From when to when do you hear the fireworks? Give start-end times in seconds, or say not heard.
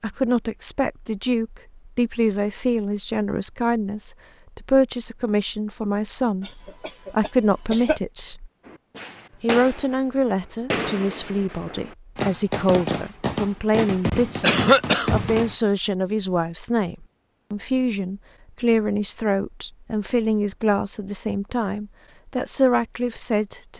8.7-15.6.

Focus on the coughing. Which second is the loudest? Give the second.
15 s.